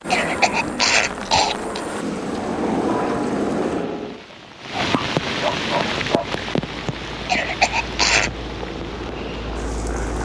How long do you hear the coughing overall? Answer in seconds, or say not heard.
3 s.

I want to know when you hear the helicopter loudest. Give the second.
3 s.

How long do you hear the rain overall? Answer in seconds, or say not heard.
10 s.